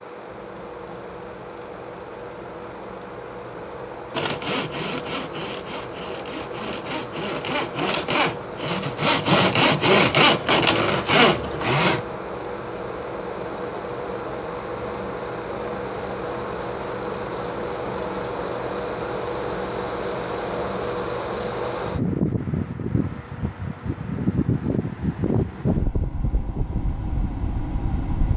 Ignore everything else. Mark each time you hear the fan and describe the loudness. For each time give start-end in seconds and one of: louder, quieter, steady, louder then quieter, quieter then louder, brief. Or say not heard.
0.0-28.3 louder.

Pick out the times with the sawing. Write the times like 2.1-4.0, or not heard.
4.1-12.1.